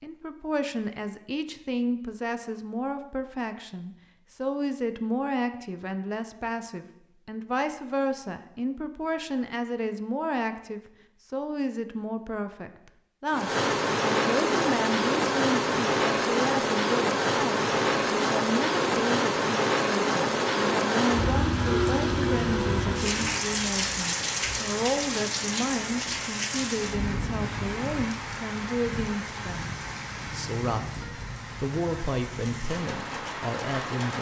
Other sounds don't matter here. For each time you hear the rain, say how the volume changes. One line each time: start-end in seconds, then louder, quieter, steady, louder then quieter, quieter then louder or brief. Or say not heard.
13.3-34.1 quieter.